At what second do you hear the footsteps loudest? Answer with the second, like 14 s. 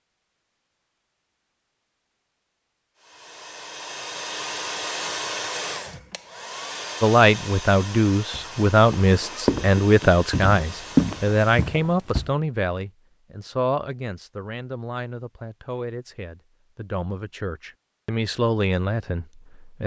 11 s.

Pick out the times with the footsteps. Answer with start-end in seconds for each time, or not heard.
8.3-12.3.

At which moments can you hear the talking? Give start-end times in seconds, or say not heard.
7.0-19.8.